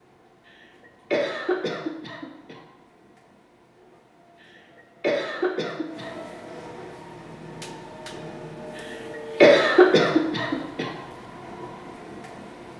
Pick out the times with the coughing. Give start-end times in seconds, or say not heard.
1.1-2.5, 5.0-6.2, 9.4-10.9.